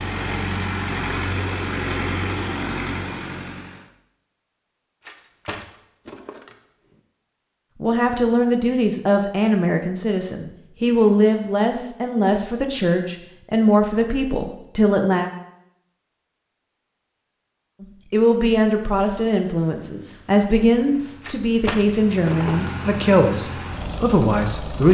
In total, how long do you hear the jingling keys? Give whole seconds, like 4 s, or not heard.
3 s.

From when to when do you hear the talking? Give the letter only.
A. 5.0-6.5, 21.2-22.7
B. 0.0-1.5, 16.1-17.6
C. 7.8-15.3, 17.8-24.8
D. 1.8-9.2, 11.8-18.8
C.